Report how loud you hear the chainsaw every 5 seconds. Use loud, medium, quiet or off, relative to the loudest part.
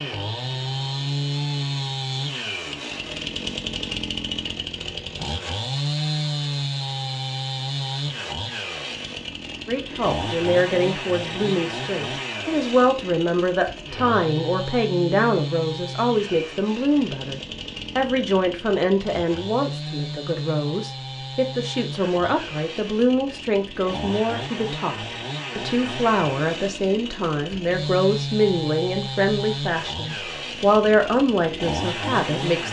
loud, loud, loud, medium, medium, loud, loud.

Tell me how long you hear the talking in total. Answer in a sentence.
You can hear the talking for 22 seconds altogether.